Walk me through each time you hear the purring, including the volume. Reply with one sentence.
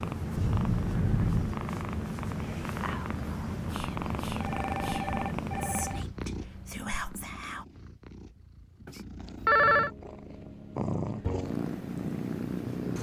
You can hear the purring from 0.0 to 12.9 s, getting quieter then louder.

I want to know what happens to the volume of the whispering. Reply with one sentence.
The loudness of the whispering goes up.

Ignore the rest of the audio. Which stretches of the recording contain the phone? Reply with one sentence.
The phone can be heard from 0.3 to 1.6 s, from 4.4 to 6.0 s and from 8.8 to 9.9 s.